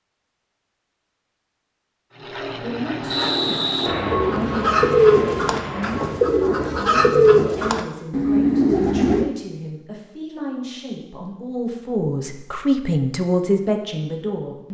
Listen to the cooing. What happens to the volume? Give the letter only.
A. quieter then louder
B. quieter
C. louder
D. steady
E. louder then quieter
A.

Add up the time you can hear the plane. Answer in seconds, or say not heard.
4 s.